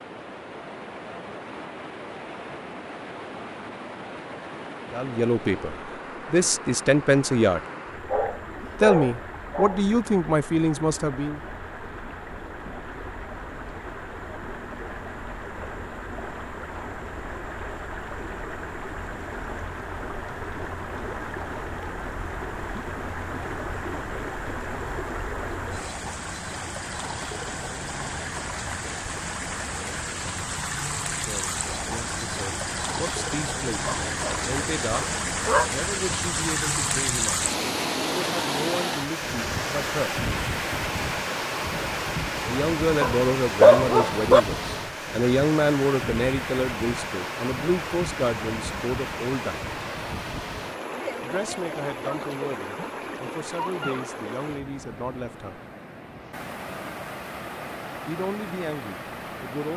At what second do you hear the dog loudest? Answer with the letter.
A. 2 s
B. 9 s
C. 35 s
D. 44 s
D.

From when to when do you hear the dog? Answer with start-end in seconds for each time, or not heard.
8.1-9.8, 33.9-35.7, 43.0-44.4.